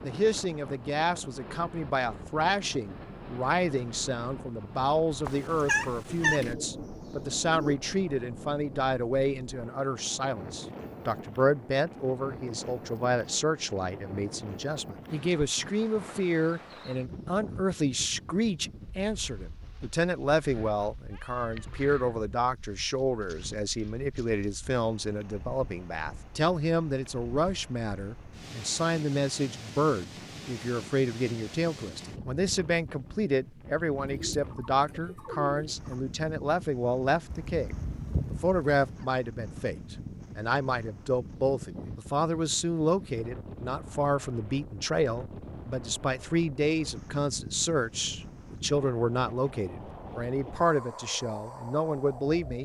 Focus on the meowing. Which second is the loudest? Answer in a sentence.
The volume of the meowing peaks at 6 seconds.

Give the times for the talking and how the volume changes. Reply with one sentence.
The talking can be heard from 0.0 to 52.6 s, at a steady volume.